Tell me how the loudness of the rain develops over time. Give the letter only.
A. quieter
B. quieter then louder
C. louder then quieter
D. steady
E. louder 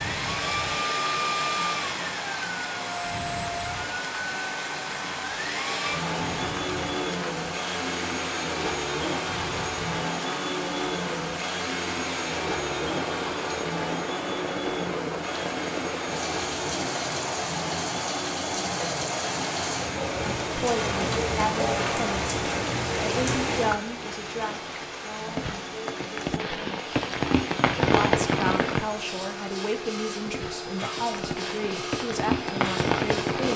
E.